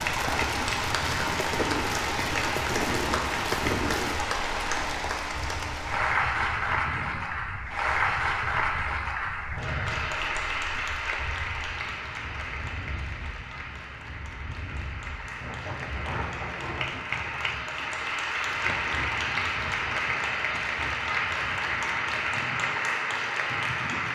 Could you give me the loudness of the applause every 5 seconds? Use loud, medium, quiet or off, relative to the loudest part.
loud, loud, medium, loud, loud.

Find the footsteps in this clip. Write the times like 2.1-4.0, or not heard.
not heard.